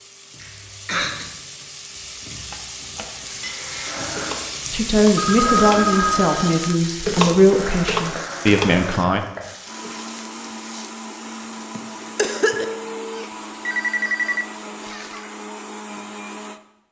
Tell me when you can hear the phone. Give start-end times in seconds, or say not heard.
5.2-6.8, 12.4-14.4.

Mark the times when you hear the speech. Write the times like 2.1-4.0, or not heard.
4.7-9.2.